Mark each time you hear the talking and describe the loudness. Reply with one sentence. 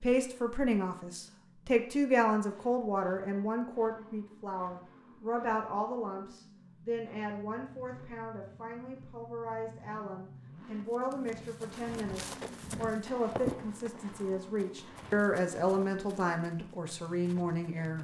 You can hear the talking from 0.0 to 18.0 s, getting quieter then louder.